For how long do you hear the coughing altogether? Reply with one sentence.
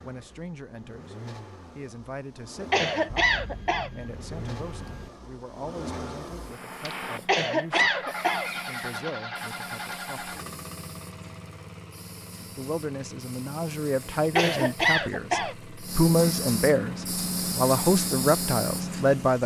You can hear the coughing for 4 seconds altogether.